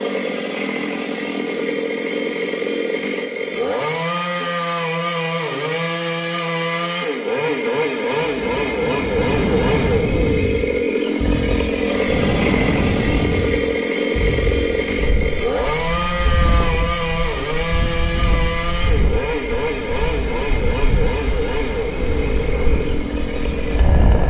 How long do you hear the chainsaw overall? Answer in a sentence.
You can hear the chainsaw for 24 seconds altogether.